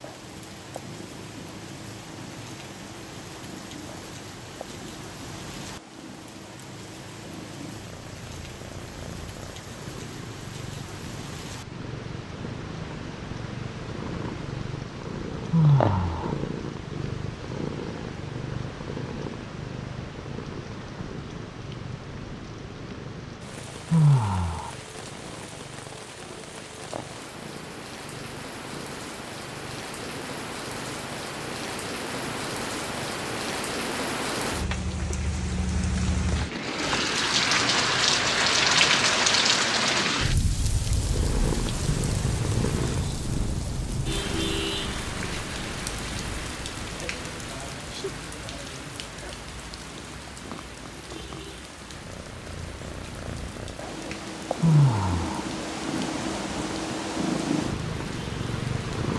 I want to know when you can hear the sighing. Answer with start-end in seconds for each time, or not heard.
15.5-16.4, 23.9-24.7, 54.6-55.5.